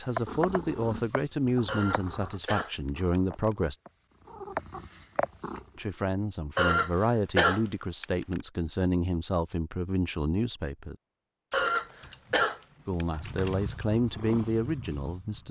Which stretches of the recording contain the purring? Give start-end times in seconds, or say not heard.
0.1-5.7, 13.1-15.4.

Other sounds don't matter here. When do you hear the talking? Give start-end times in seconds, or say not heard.
0.0-3.8, 5.8-10.9, 12.8-15.4.